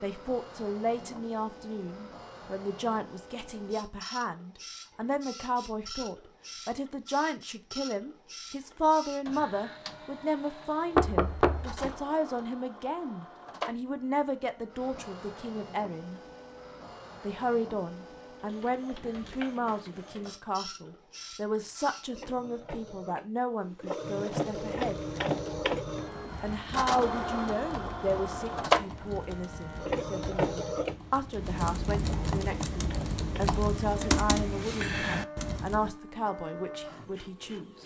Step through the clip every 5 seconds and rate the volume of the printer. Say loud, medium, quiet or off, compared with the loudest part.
quiet, quiet, quiet, quiet, medium, loud, loud, quiet.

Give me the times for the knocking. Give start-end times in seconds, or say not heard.
10.9-11.9.